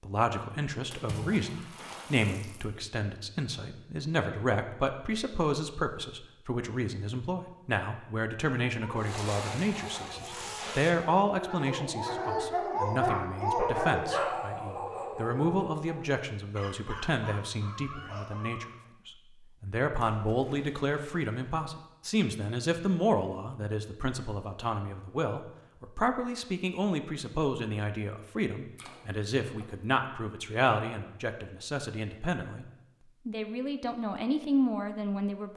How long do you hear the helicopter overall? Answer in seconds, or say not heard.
not heard.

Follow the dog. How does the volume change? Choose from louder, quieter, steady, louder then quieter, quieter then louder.
louder then quieter.